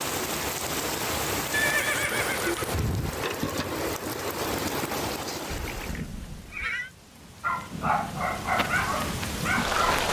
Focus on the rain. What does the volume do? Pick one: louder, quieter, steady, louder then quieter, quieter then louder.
quieter then louder.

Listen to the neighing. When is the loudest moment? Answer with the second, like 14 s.
2 s.